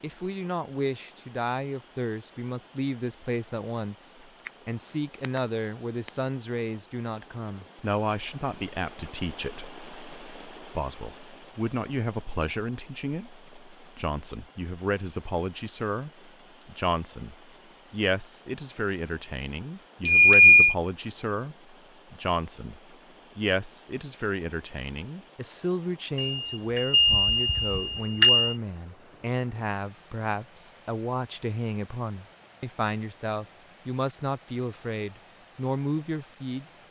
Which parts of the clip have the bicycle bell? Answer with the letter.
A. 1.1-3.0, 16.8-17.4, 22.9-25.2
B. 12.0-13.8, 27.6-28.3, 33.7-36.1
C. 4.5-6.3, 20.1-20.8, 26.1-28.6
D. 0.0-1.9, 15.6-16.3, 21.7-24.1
C.